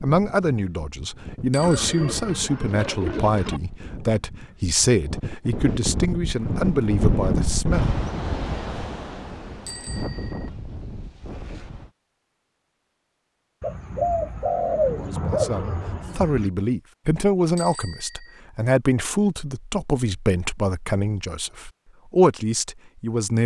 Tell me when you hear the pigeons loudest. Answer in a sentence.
The loudest moment of the pigeons is at 15 seconds.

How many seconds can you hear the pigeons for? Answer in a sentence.
You can hear the pigeons for 5 seconds altogether.